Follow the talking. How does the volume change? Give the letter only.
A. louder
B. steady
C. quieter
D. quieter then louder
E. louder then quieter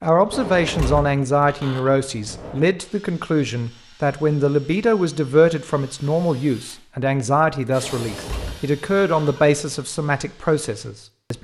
B.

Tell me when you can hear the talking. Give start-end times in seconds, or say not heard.
0.0-11.3.